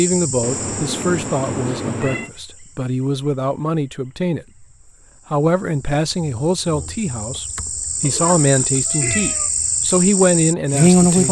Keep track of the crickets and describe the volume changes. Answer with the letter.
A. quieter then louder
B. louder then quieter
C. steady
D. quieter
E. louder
A.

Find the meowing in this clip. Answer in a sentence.
The meowing can be heard from 0.4 to 2.3 s and from 8.0 to 9.5 s.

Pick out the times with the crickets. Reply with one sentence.
The crickets can be heard from 0.0 to 11.2 s.